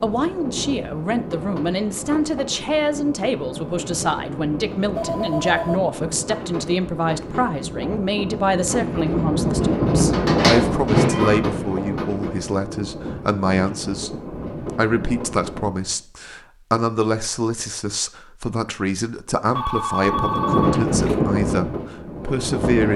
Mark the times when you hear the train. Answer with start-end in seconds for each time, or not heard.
0.0-16.0, 20.1-22.9.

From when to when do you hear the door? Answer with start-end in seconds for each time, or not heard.
10.1-11.8.